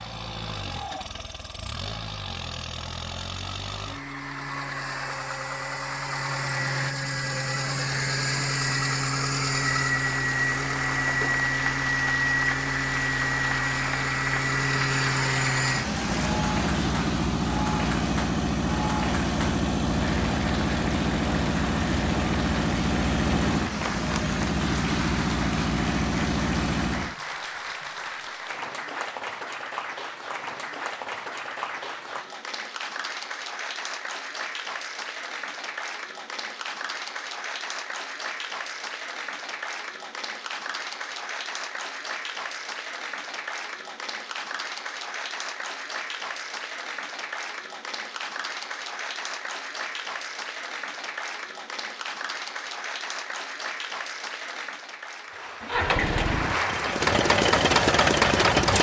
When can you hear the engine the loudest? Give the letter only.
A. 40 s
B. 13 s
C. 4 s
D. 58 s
D.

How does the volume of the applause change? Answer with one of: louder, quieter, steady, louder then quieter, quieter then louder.
steady.